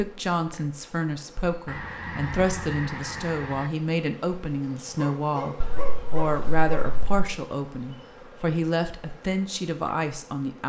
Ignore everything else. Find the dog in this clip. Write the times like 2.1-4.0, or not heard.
5.0-6.9.